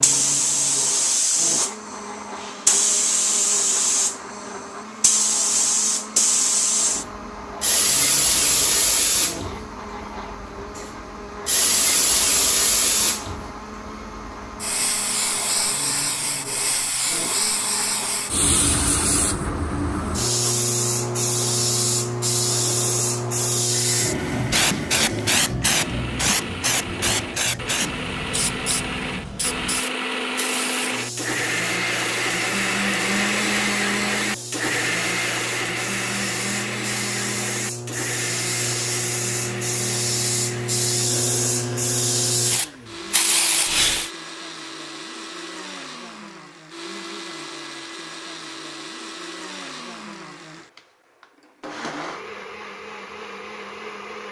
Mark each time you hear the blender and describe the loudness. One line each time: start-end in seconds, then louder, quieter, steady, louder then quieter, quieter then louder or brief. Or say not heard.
0.0-54.2 louder then quieter.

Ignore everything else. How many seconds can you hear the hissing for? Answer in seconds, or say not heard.
44 s.